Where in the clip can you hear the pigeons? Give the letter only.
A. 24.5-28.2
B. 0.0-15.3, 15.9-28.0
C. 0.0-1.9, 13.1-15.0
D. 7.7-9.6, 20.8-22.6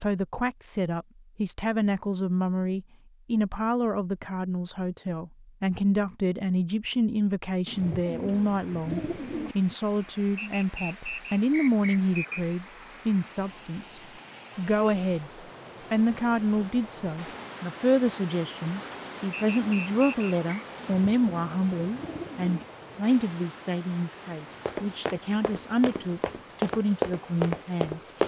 D.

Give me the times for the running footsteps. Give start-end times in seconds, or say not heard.
24.5-28.2.